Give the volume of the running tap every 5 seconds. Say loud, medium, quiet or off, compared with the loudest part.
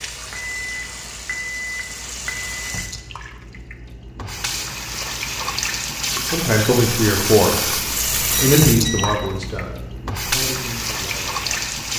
medium, loud, loud.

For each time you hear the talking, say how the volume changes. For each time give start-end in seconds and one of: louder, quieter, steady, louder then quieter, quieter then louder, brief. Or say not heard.
6.2-11.9 quieter.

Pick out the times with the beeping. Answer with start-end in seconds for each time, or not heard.
0.3-2.9, 8.3-9.2.